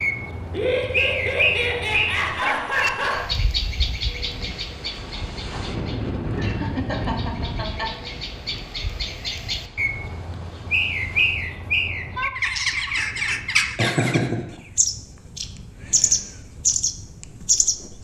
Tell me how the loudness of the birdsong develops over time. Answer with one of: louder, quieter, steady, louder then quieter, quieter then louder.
quieter then louder.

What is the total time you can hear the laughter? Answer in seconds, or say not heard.
5 s.